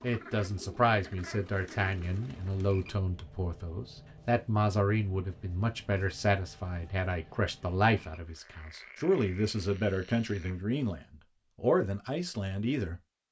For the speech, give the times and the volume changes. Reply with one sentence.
The speech can be heard from 0.0 to 13.2 s, at a steady volume.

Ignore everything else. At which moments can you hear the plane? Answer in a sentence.
You can't hear the plane here.